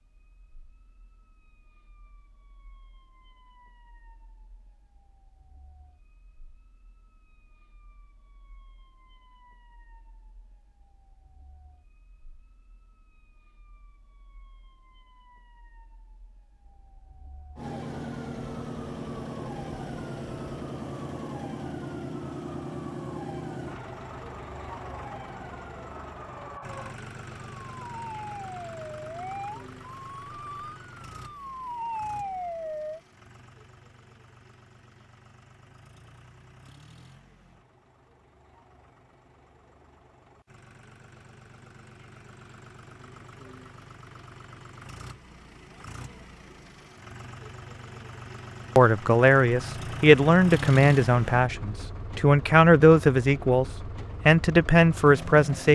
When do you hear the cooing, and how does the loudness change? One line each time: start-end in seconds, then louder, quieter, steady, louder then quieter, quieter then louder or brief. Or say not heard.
not heard.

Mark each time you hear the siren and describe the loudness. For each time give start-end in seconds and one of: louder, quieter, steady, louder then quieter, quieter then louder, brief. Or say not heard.
0.2-33.0 louder.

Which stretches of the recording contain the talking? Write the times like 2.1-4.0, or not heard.
48.8-53.6, 54.2-55.6.